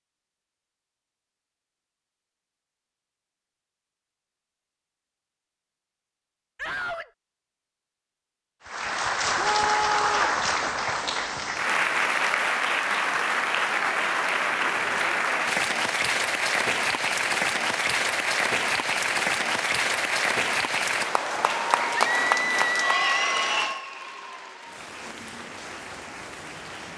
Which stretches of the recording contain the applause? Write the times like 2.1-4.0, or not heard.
8.7-26.9.